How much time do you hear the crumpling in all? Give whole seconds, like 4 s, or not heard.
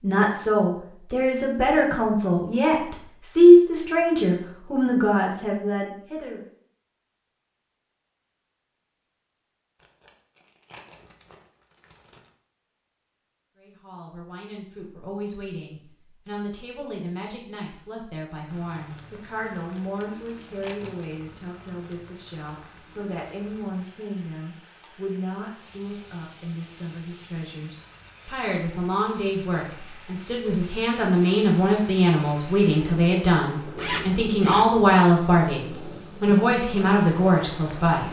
4 s.